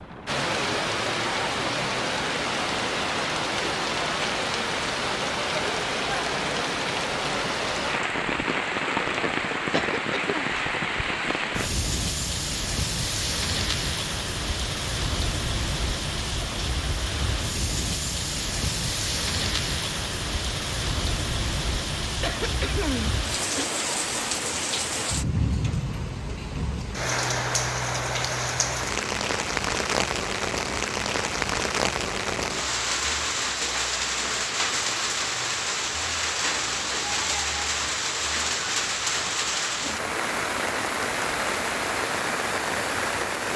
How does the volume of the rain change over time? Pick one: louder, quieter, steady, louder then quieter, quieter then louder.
steady.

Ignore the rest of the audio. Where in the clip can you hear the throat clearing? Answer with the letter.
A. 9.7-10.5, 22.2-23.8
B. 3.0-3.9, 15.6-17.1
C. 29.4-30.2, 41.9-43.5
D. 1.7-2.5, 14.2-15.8
A.